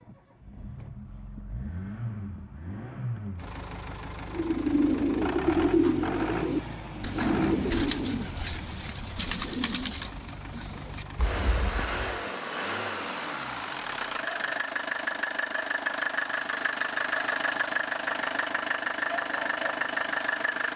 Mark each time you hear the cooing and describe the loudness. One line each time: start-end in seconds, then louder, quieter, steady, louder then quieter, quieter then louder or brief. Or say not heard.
4.3-12.2 quieter.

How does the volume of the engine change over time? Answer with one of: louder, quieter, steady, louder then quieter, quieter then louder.
louder.